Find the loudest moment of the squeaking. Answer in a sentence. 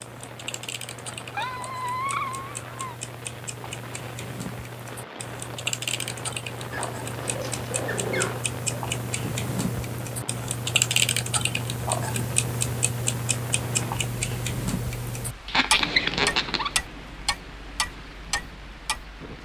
The volume of the squeaking peaks at 16 seconds.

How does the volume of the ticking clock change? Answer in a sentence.
The loudness of the ticking clock goes up.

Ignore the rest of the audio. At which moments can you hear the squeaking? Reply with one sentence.
The squeaking can be heard from 1.3 to 3.0 s, from 6.7 to 8.4 s and from 15.4 to 16.8 s.